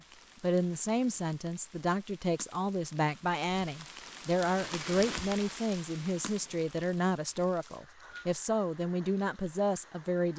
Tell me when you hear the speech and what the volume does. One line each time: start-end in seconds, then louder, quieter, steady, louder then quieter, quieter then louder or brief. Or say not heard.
0.4-10.3 steady.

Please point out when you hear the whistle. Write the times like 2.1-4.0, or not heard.
7.6-8.2.